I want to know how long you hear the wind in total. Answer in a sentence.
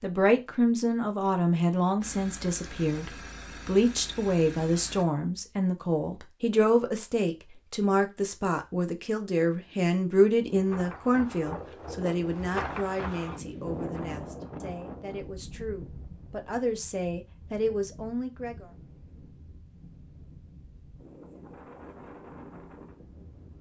The wind can be heard for 13 seconds in total.